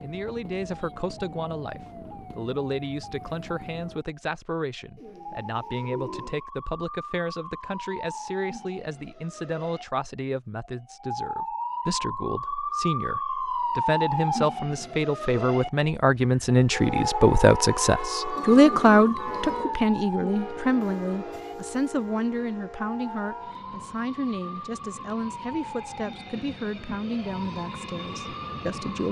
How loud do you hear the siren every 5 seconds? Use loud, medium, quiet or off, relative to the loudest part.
quiet, medium, loud, loud, medium, medium.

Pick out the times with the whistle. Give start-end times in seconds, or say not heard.
not heard.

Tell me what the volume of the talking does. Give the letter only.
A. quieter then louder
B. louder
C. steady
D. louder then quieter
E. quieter
D.